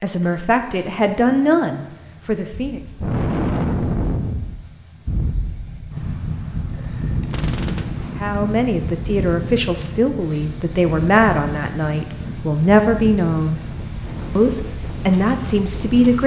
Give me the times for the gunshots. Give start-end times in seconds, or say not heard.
7.2-8.2.